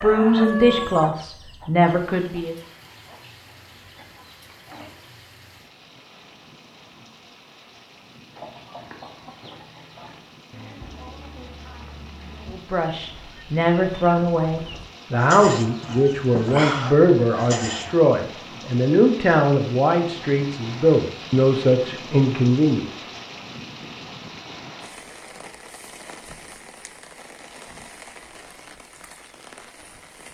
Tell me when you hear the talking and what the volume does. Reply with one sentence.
You can hear the talking briefly from 0.0 to 2.5 s; and from 12.5 to 22.9 s, at a steady volume.